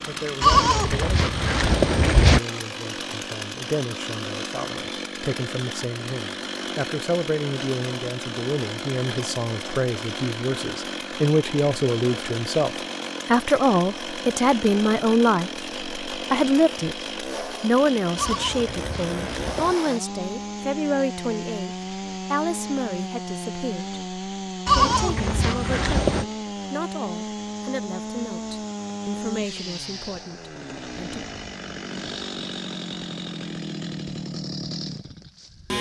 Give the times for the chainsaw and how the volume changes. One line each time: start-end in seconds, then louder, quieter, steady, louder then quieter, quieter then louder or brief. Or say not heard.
0.0-35.7 steady.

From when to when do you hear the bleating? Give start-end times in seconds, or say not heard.
0.4-2.4, 18.1-19.8, 24.6-26.2.